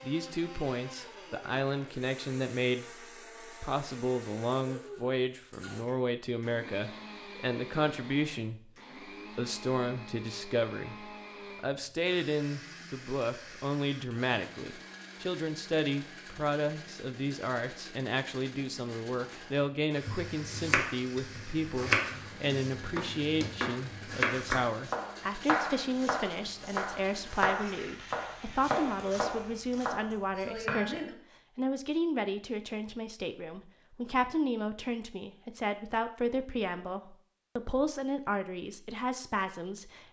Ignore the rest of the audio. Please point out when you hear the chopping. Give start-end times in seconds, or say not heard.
19.5-31.1.